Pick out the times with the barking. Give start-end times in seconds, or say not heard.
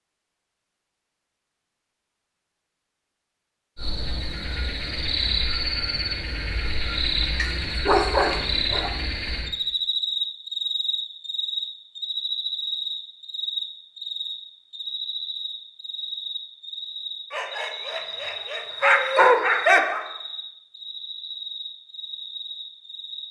7.3-8.9, 17.3-20.1.